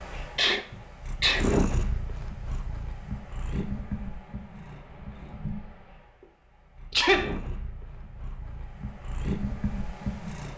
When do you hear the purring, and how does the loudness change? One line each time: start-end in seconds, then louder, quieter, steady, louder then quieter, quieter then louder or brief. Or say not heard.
0.0-10.5 quieter then louder.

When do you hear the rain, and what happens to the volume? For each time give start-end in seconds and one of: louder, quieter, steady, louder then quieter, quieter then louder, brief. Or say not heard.
not heard.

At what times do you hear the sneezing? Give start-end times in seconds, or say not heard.
0.3-1.5, 6.9-7.3.